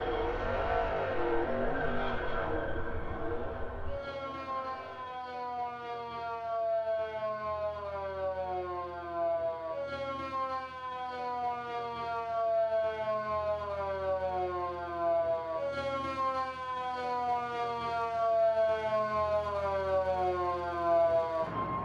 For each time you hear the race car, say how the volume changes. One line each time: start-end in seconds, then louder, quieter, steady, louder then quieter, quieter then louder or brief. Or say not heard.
0.0-5.2 quieter.